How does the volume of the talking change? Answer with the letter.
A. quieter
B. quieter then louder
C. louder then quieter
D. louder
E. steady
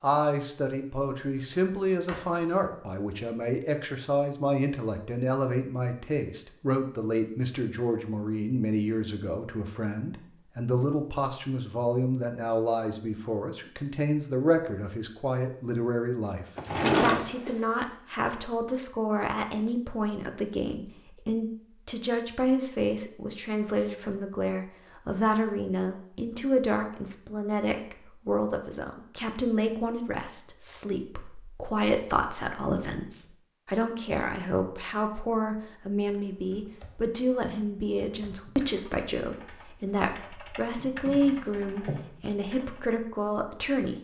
E.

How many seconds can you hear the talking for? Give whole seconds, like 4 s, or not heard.
44 s.